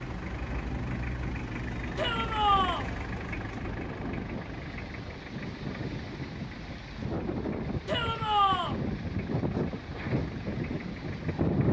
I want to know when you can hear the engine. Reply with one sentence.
The engine can be heard from 0.0 to 11.6 s.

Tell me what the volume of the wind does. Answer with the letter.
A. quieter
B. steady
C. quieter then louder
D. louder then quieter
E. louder
E.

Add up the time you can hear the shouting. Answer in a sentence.
The shouting can be heard for 2 seconds in total.